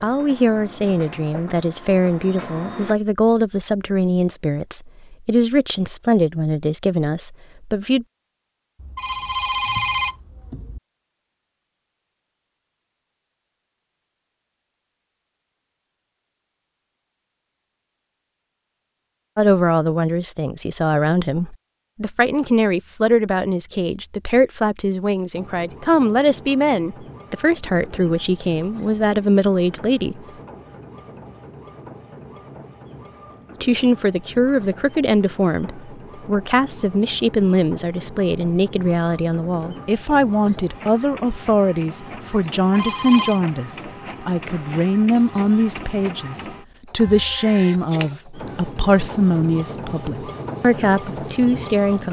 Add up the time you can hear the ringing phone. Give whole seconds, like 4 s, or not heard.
2 s.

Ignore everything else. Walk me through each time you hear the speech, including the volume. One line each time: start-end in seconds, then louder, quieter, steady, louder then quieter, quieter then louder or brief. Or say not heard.
0.0-8.1 steady
19.4-30.2 steady
33.6-52.0 steady.